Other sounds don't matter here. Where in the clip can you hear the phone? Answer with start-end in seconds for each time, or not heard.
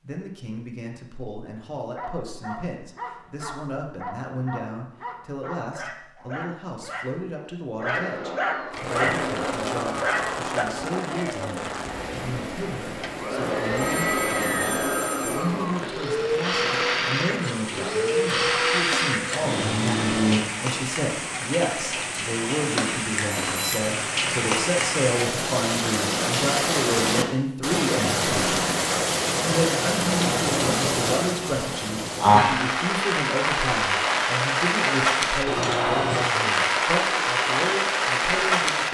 13.8-15.5, 23.3-23.9.